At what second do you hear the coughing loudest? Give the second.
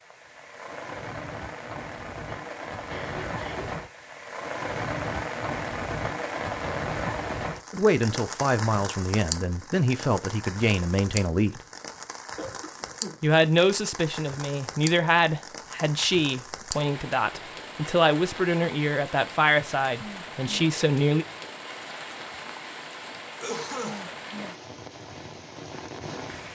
24 s.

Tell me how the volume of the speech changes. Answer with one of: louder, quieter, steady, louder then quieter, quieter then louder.
steady.